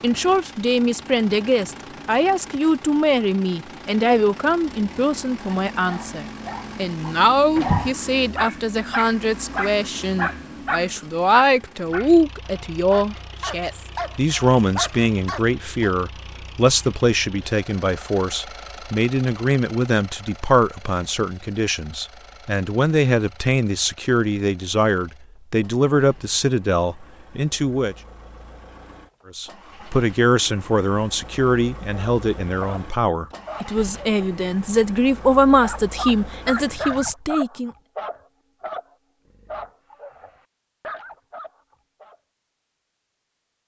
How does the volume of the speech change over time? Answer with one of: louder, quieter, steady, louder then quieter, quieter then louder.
steady.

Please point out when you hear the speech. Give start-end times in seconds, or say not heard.
0.0-27.9, 29.4-37.7.